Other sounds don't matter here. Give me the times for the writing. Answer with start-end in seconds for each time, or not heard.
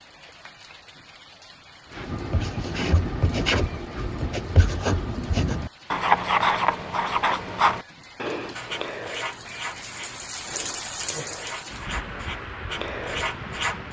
1.9-13.8.